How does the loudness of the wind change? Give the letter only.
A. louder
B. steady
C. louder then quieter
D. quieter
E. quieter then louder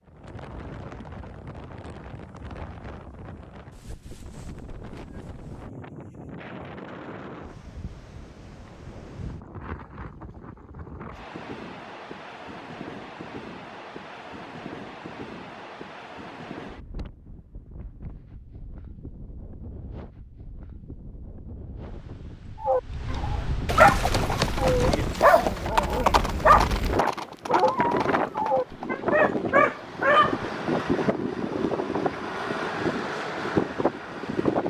A.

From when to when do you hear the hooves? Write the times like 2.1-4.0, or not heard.
23.6-28.9.